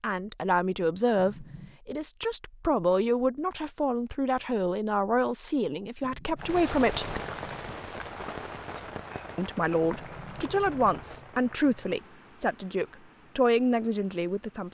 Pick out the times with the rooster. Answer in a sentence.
You can't hear the rooster here.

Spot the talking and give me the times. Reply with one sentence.
You can hear the talking from 0.0 to 7.2 s and from 9.3 to 14.7 s.